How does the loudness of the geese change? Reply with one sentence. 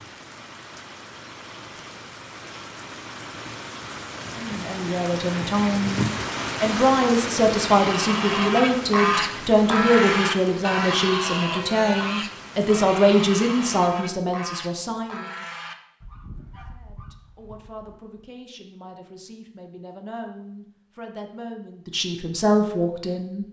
The volume of the geese goes down.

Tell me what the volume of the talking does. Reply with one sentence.
The volume of the talking goes down, then up.